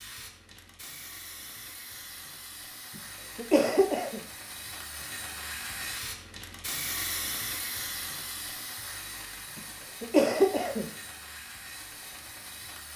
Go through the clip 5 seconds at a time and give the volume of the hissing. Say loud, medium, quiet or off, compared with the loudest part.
medium, loud, medium.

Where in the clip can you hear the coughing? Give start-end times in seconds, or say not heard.
3.0-4.2, 9.6-10.9.